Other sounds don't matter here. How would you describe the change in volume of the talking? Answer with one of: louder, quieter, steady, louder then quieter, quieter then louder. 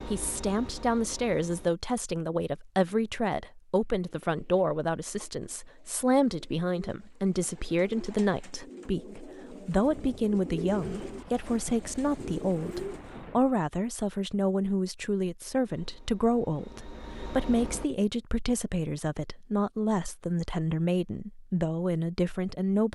steady.